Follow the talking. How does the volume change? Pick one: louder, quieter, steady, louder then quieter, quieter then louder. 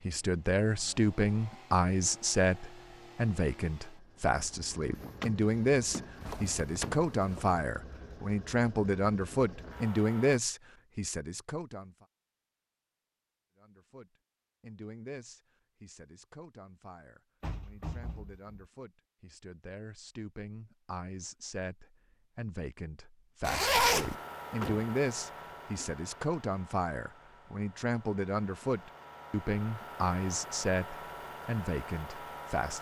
quieter then louder.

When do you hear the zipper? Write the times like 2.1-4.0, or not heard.
6.2-7.6, 23.4-24.1.